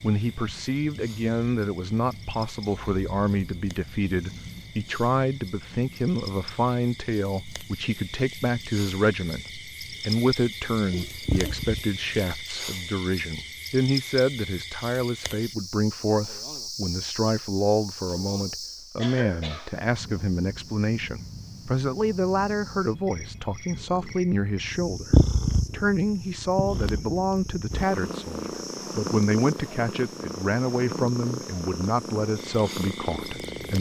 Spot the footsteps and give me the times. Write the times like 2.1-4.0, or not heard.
not heard.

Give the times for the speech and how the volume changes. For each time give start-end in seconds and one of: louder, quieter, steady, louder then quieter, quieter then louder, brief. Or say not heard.
0.0-33.7 steady.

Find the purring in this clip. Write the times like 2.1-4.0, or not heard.
0.0-12.4, 19.8-33.7.